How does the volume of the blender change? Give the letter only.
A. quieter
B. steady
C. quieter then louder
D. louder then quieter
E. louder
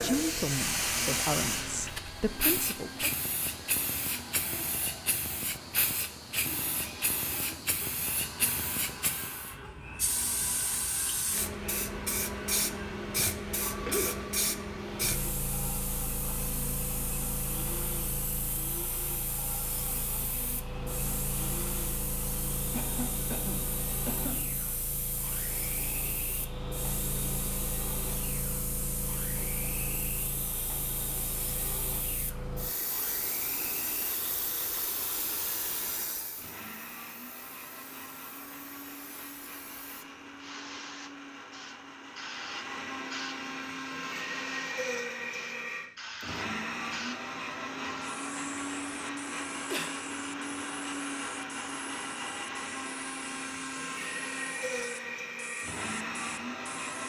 E.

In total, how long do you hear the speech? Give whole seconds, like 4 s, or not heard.
3 s.